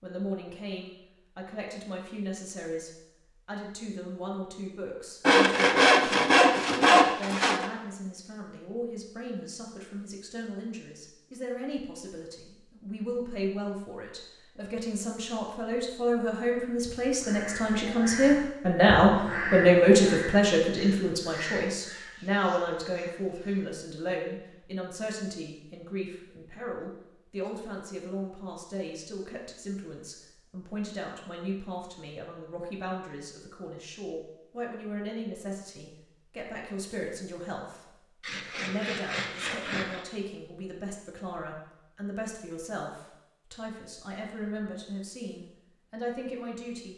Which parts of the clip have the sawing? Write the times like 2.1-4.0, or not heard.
5.2-7.7, 38.2-40.0.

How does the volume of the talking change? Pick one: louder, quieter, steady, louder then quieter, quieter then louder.
louder then quieter.